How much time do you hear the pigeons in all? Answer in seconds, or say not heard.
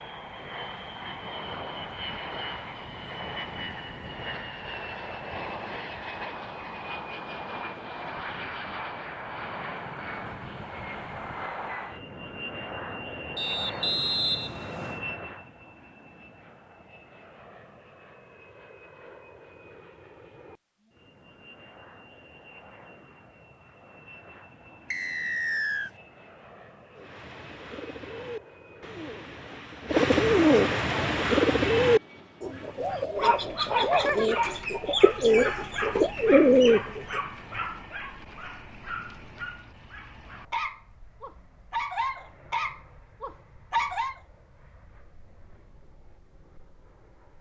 10 s.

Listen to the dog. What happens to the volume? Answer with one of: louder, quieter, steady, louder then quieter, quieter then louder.
quieter then louder.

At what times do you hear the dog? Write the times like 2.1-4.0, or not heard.
32.5-44.1.